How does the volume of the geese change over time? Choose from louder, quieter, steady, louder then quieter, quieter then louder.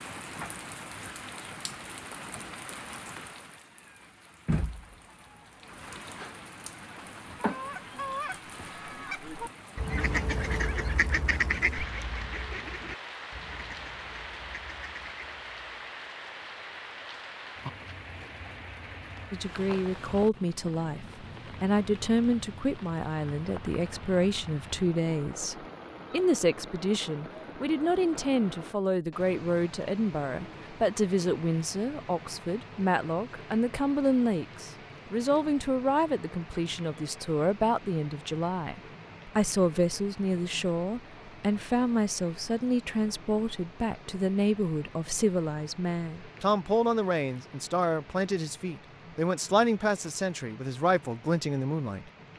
louder then quieter.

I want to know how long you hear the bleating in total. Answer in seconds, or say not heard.
not heard.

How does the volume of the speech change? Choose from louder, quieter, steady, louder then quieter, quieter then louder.
steady.